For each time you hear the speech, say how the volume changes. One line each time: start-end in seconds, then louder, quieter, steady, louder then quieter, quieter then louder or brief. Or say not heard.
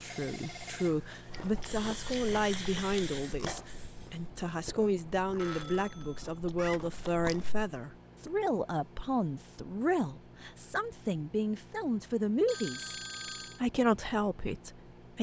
0.0-12.9 steady
13.6-15.1 brief.